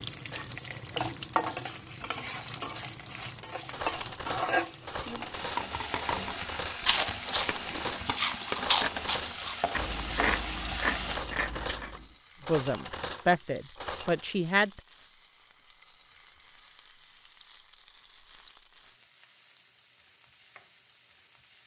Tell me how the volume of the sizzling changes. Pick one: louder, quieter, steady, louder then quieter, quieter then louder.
quieter.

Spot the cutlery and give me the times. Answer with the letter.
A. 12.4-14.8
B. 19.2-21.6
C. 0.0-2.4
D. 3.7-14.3
D.